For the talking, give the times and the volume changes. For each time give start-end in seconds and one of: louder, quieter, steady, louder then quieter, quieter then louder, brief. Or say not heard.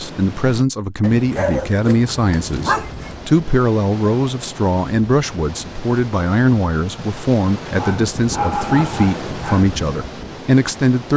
0.0-11.1 steady.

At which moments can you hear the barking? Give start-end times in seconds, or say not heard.
1.0-3.1, 7.8-9.7.